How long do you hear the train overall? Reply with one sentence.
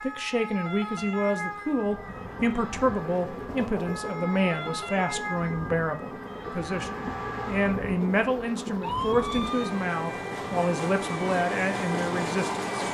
You can hear the train for 11 seconds altogether.